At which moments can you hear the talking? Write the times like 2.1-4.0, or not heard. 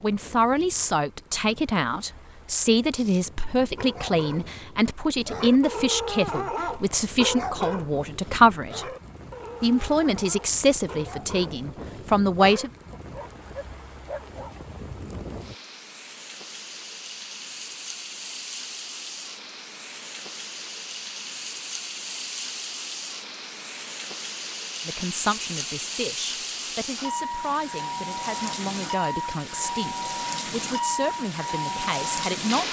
0.0-8.8, 9.6-12.7, 24.9-32.6.